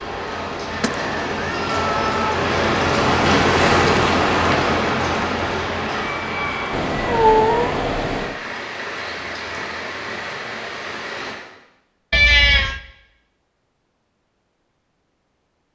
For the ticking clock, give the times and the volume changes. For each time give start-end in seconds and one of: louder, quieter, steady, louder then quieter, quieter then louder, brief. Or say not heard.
not heard.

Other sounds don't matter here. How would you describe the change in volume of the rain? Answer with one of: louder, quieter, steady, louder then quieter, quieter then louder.
louder then quieter.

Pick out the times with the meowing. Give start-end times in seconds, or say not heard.
0.8-2.4, 6.7-8.3, 12.1-12.8.